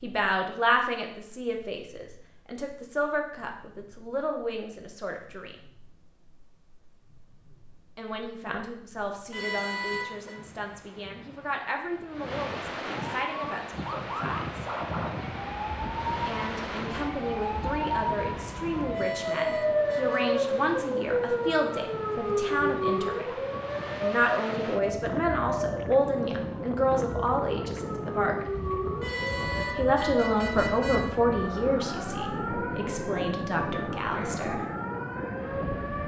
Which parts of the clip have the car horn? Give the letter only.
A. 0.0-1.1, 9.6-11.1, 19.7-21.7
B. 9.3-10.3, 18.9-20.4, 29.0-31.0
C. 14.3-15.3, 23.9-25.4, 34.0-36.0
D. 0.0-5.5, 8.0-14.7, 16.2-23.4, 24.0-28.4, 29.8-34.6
B.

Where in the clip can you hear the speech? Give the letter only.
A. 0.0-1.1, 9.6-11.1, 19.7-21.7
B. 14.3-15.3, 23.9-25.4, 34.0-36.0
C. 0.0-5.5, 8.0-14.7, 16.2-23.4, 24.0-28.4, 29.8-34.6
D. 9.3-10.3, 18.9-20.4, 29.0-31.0
C.